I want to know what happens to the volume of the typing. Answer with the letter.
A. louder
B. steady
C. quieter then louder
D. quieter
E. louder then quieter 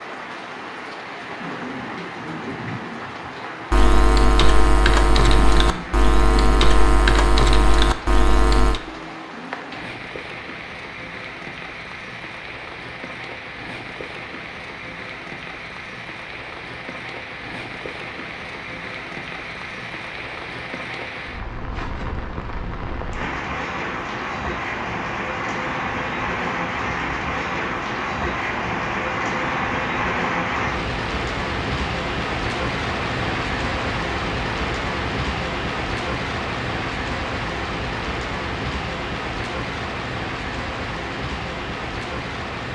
B.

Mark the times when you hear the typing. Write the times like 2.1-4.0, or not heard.
3.7-8.8.